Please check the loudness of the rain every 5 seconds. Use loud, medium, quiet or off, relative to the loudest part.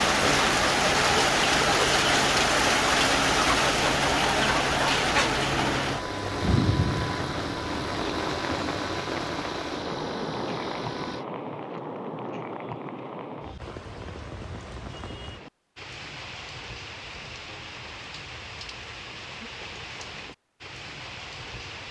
loud, medium, quiet, quiet, quiet.